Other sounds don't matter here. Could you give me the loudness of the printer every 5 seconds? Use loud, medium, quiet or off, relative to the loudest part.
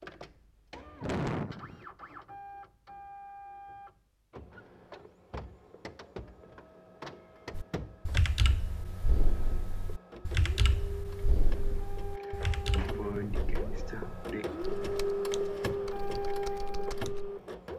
quiet, quiet, medium, loud.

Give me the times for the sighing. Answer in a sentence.
You can hear the sighing from 1.0 to 1.9 s and from 12.2 to 14.4 s.